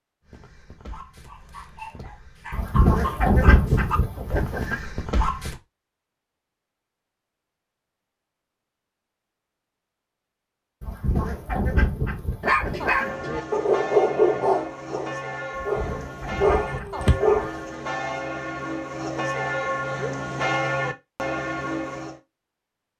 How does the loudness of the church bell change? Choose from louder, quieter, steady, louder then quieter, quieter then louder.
louder.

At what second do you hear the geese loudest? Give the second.
3 s.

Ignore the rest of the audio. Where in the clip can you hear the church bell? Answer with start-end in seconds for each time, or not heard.
12.8-22.2.